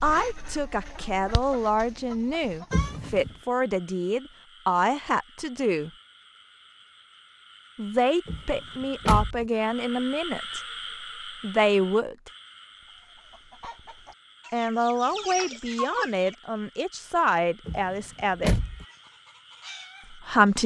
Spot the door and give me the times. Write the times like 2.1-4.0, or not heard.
2.7-3.4, 8.2-9.4, 17.6-18.9.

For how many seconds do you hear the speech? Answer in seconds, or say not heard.
14 s.